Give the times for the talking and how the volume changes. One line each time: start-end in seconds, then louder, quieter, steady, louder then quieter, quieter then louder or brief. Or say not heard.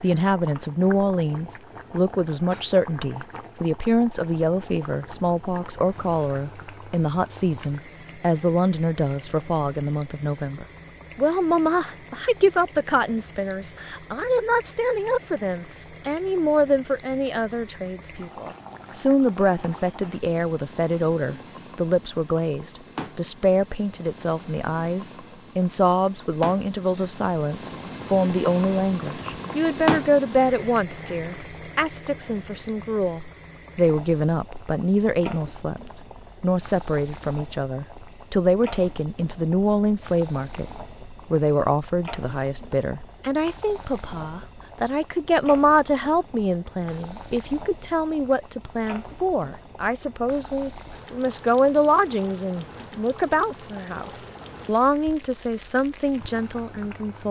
0.0-57.2 steady.